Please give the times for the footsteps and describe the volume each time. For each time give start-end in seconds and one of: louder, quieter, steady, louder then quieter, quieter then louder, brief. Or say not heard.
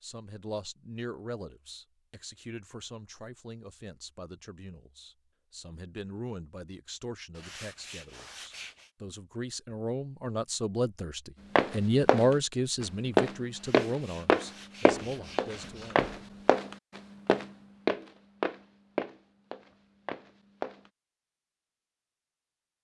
11.6-20.9 quieter.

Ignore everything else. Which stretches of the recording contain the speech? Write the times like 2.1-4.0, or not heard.
0.0-16.0.